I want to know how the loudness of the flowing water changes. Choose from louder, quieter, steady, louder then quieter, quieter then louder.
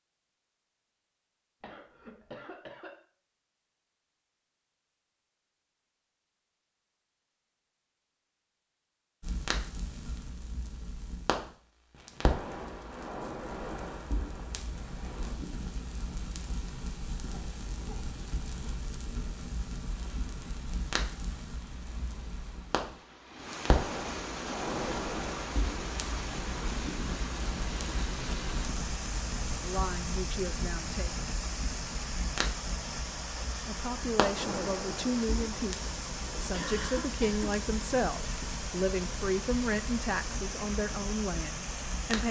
louder.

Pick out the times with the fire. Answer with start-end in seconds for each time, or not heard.
9.2-42.2.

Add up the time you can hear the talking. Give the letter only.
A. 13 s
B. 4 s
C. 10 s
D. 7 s
C.